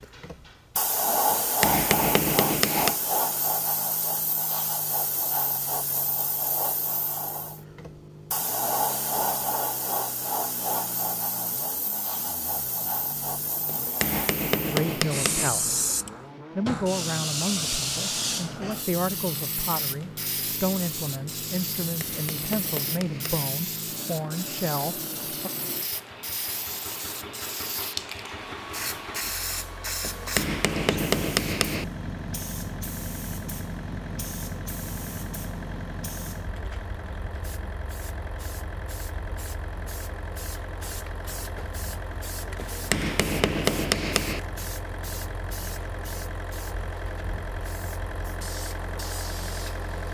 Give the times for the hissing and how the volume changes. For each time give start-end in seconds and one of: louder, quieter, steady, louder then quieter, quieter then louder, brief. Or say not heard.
0.0-50.0 quieter.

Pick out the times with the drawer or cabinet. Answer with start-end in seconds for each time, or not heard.
not heard.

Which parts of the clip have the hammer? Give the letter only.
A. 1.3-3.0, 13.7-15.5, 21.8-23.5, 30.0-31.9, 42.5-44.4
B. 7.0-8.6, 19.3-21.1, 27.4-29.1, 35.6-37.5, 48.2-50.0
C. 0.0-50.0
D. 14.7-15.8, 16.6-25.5
A.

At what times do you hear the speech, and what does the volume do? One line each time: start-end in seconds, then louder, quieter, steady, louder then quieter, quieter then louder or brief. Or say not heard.
14.7-15.8 brief
16.6-25.5 steady.